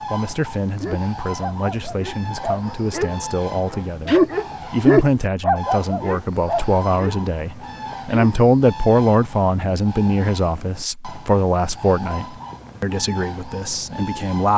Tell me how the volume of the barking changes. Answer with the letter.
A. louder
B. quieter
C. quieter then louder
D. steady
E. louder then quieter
E.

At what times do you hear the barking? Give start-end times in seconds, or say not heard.
0.8-8.4.